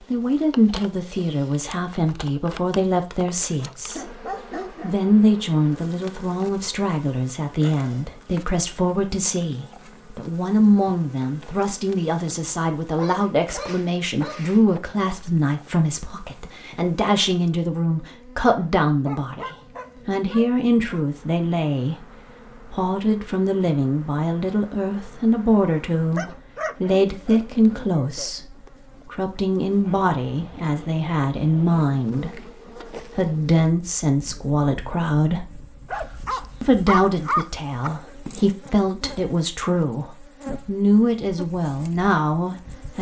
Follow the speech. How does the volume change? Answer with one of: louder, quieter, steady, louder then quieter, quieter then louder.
steady.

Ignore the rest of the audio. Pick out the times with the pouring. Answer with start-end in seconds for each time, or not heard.
not heard.